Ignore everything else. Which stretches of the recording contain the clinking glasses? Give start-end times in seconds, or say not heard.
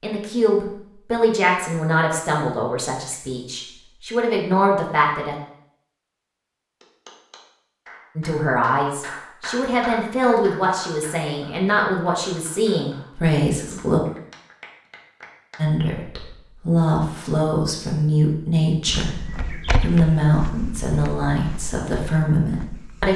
not heard.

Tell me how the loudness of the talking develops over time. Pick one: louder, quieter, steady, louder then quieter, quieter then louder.
steady.